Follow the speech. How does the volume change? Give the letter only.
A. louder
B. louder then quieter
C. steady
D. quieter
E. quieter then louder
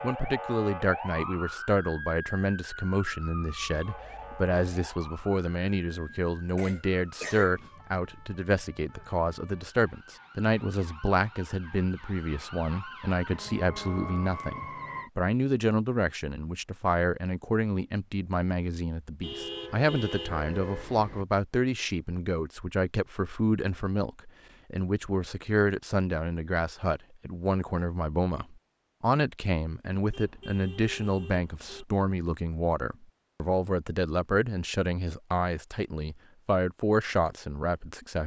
C.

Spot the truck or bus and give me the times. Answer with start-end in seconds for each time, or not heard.
not heard.